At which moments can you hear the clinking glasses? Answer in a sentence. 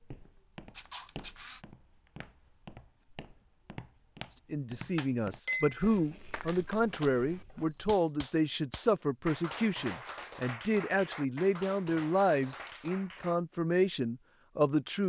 You can hear the clinking glasses from 5.0 to 6.8 s.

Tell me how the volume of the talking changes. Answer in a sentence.
The loudness of the talking stays about the same.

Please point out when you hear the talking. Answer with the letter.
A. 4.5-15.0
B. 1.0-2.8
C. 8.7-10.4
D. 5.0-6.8
A.